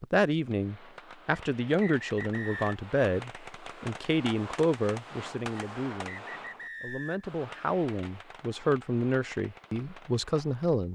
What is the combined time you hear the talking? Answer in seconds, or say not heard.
11 s.